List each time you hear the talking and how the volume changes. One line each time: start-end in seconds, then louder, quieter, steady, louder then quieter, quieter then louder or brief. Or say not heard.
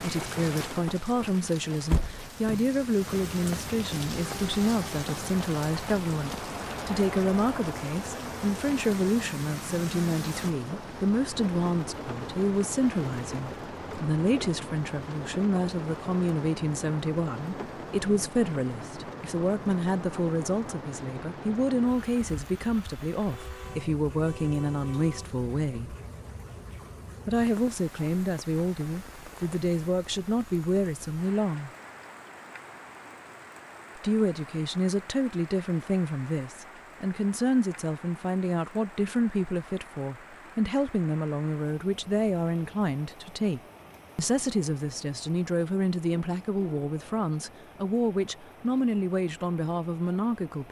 0.0-25.9 steady
27.2-31.7 steady
34.0-50.6 steady.